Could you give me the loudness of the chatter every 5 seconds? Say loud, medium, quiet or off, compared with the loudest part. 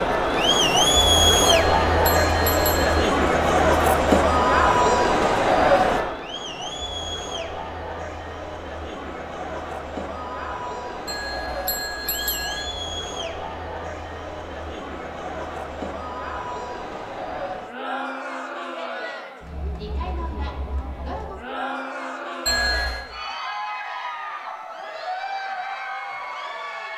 loud, medium, quiet, quiet, quiet, quiet.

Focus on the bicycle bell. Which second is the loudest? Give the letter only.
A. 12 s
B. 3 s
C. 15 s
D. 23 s
D.